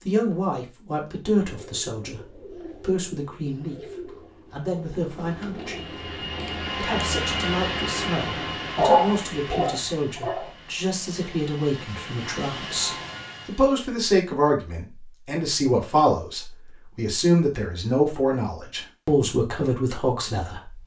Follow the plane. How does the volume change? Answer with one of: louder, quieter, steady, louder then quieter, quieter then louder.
quieter then louder.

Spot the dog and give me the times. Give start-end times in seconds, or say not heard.
8.8-10.5.